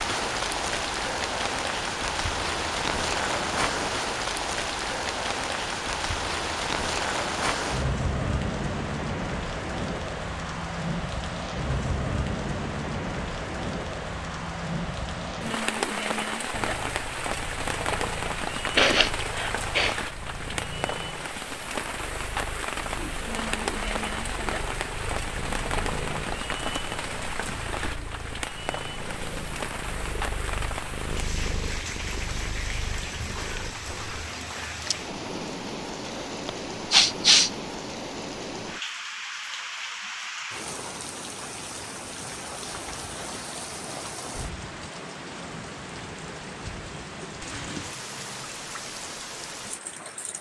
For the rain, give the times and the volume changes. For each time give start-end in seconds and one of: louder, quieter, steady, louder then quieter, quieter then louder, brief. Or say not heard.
0.0-50.3 quieter.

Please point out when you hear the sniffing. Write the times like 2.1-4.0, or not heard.
18.8-19.9, 36.0-37.5.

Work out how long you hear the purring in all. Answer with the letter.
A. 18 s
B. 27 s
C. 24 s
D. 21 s
A.